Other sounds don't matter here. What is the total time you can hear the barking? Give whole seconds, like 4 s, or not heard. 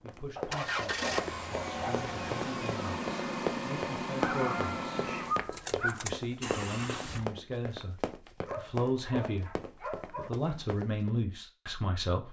6 s.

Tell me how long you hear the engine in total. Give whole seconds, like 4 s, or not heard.
7 s.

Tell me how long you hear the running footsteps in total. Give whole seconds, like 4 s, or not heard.
11 s.